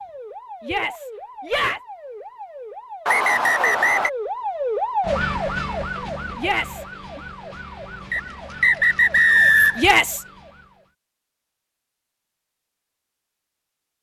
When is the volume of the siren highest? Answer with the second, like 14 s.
5 s.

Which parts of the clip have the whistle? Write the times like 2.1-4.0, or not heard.
3.0-4.1, 8.1-9.8.